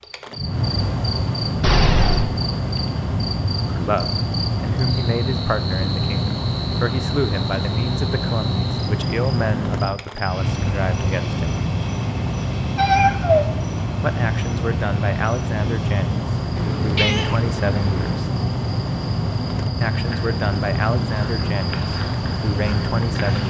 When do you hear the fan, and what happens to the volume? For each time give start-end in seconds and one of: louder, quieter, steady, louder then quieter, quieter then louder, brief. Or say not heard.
0.0-23.4 steady.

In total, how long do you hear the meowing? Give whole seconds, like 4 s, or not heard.
3 s.